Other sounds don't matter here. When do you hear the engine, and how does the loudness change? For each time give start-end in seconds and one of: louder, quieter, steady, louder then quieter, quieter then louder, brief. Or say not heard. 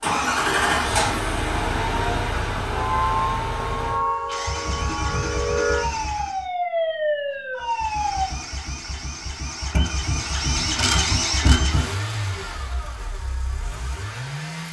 0.0-6.5 quieter
7.5-14.6 louder then quieter.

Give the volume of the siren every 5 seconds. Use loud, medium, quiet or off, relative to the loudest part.
loud, loud, off.